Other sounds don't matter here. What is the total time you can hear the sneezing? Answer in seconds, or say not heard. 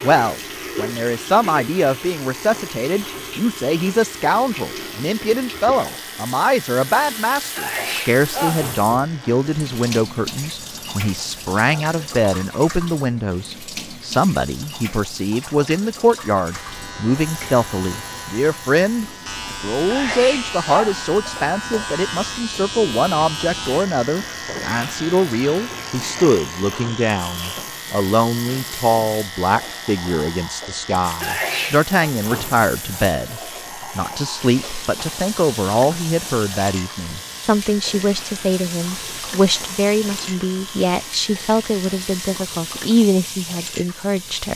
3 s.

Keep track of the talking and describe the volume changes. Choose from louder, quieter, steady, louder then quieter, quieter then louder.
steady.